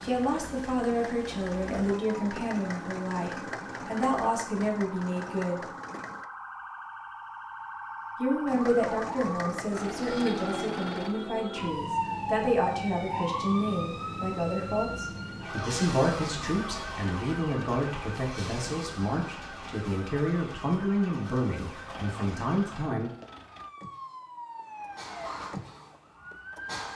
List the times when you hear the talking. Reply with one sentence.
The talking can be heard from 0.0 to 5.6 s and from 8.2 to 23.1 s.